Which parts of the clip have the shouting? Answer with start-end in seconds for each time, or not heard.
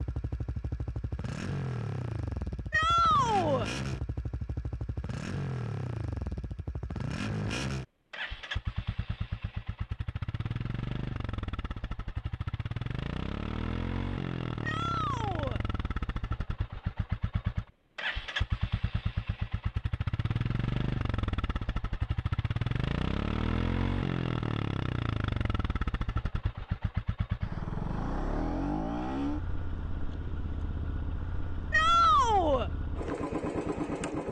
2.7-3.7, 14.6-15.6, 31.7-32.7.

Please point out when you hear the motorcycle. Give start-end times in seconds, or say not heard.
0.0-34.2.